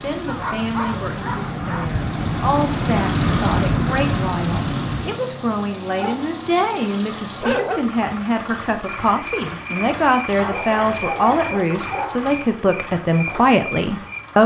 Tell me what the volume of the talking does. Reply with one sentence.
The loudness of the talking goes up.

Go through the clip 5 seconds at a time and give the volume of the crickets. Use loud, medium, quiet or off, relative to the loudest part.
loud, medium, medium.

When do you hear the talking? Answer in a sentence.
The talking can be heard from 0.0 to 14.4 s.